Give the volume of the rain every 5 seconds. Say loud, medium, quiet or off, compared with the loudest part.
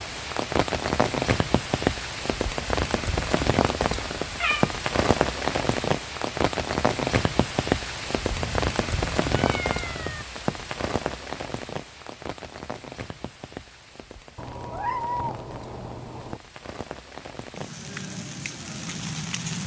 loud, loud, medium, medium.